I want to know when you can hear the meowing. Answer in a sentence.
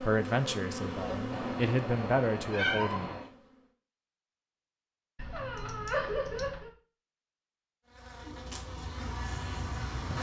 You can hear the meowing from 1.3 to 3.3 s and from 5.2 to 6.7 s.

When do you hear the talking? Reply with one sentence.
You can hear the talking from 0.0 to 3.1 s.